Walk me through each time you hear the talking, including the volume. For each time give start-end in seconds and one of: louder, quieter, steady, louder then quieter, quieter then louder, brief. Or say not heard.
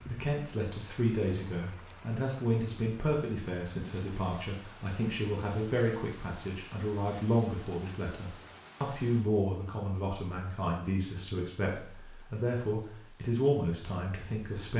0.1-14.7 steady.